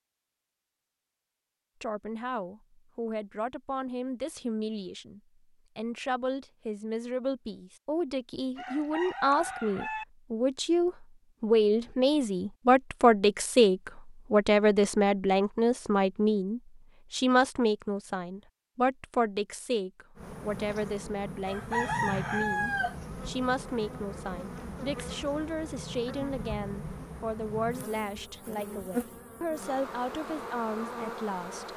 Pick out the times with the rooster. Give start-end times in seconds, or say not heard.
8.6-10.1, 21.4-23.0.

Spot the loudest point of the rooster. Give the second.
22 s.